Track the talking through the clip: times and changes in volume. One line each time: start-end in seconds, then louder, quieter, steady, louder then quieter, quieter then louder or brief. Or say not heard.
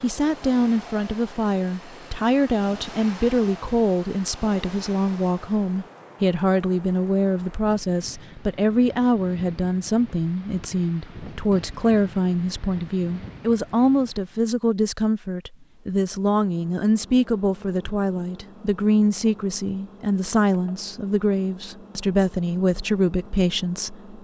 0.0-24.1 steady.